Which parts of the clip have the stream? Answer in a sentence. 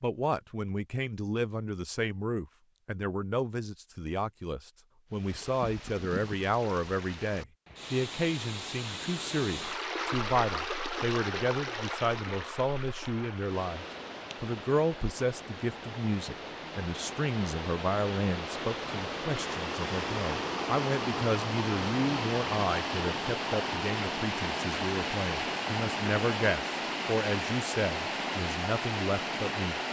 The stream can be heard from 5.1 to 29.8 s.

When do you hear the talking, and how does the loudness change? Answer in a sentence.
You can hear the talking from 0.0 to 29.8 s, at a steady volume.